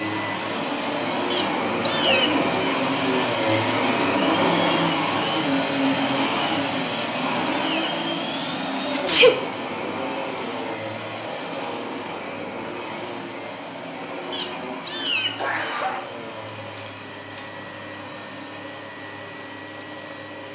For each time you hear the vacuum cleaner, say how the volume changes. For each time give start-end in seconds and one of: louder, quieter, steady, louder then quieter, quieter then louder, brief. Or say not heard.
0.0-20.5 quieter.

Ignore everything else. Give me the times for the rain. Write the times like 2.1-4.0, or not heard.
not heard.